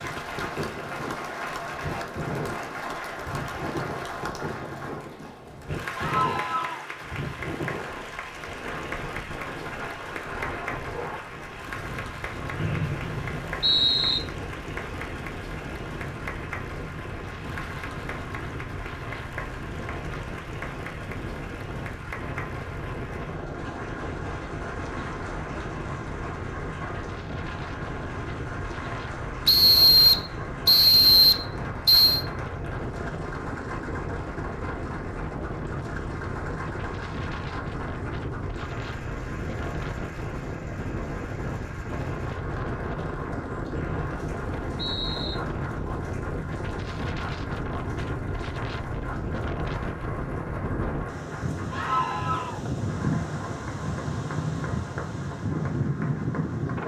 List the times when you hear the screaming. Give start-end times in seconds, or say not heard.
6.0-6.8, 51.7-52.6.